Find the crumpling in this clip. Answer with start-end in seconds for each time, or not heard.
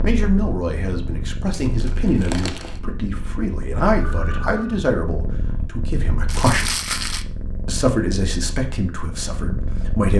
1.5-2.8, 6.2-7.2.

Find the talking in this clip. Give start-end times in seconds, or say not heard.
0.0-6.8, 7.7-10.1.